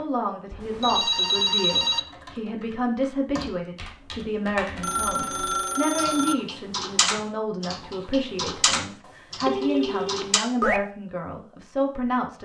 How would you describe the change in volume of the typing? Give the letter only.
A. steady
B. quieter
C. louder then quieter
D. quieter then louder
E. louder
E.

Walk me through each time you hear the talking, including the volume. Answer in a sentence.
You can hear the talking from 0.0 to 12.4 s, at a steady volume.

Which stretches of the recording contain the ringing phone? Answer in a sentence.
The ringing phone can be heard from 0.5 to 2.0 s, from 4.8 to 6.3 s and from 9.4 to 10.8 s.